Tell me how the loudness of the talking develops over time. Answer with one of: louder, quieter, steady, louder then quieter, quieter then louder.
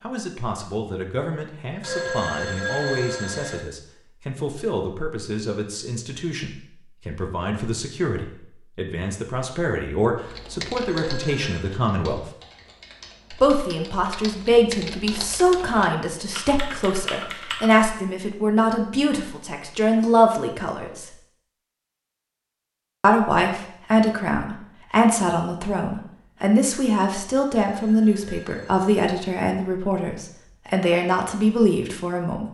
louder.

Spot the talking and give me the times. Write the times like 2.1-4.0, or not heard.
0.0-12.2, 13.3-21.1, 23.0-32.4.